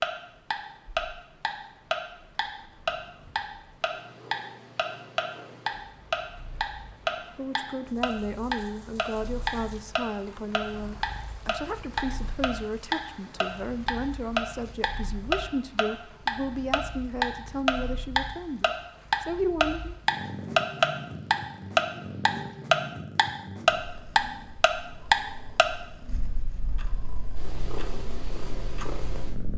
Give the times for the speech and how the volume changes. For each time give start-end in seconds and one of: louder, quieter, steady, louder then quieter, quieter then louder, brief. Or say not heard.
7.2-19.9 steady.